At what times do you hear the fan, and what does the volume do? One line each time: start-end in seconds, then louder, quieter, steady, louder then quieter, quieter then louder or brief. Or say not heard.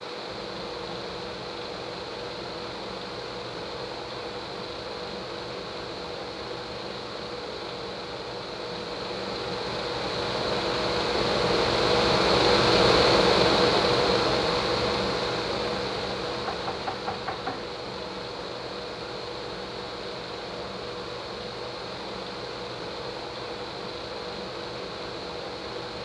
0.0-25.9 louder then quieter.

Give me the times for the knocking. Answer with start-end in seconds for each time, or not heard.
16.4-17.7.